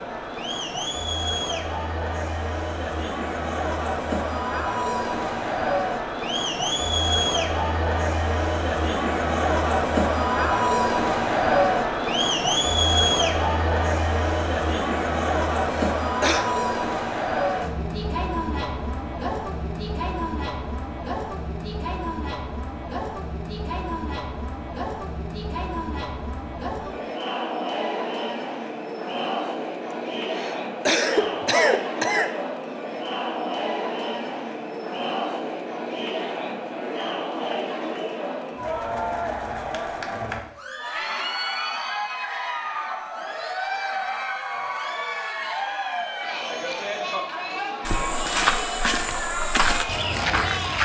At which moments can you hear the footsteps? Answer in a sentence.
The footsteps can be heard from 47.9 to 50.8 s.